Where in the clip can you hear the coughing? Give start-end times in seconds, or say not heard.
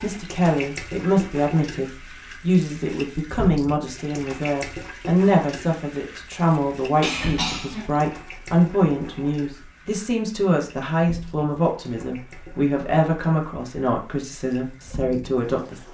7.0-7.9.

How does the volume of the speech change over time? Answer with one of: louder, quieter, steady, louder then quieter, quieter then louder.
steady.